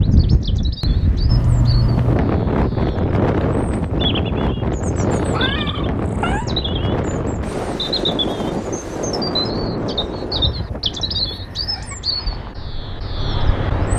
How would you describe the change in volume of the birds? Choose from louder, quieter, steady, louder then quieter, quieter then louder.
louder.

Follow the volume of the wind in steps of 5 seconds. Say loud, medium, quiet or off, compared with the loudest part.
loud, loud, medium.